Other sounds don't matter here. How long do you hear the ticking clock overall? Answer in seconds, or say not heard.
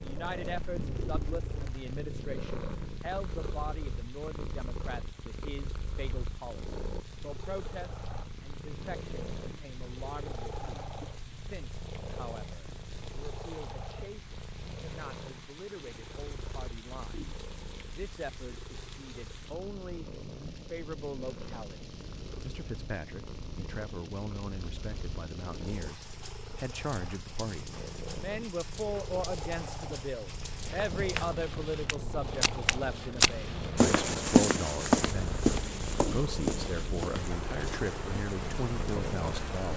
not heard.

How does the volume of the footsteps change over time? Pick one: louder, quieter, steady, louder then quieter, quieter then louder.
louder then quieter.